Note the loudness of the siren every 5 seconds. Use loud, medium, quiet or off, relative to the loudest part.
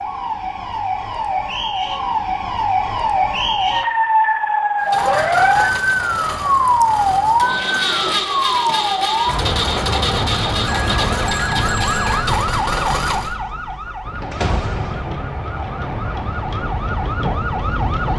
loud, loud, medium, medium.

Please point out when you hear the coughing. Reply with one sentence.
The coughing can't be heard in this clip.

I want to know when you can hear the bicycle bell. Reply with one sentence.
You can hear the bicycle bell from 10.7 to 12.2 s.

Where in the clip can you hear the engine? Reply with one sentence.
The engine can be heard from 4.8 to 13.3 s.